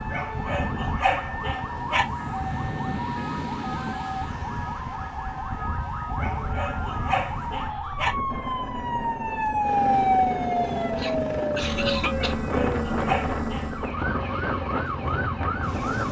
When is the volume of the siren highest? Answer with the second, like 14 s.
10 s.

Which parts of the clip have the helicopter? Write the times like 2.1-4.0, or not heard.
8.2-16.0.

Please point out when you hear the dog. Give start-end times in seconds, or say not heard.
0.1-2.0, 6.2-8.2, 12.2-13.9.